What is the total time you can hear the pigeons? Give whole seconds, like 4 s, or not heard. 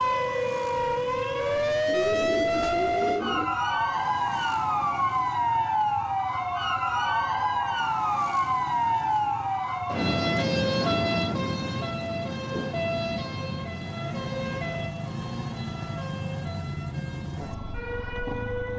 2 s.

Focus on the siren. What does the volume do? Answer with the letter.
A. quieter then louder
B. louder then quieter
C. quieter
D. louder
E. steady
C.